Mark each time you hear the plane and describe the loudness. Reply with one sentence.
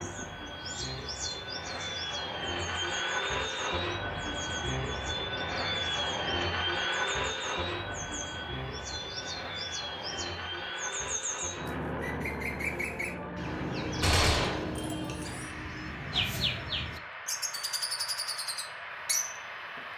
The plane can be heard from 0.0 to 19.9 s, getting quieter.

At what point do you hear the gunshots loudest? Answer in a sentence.
The loudest moment of the gunshots is at 14 seconds.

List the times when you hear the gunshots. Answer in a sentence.
You can hear the gunshots from 14.0 to 15.4 s.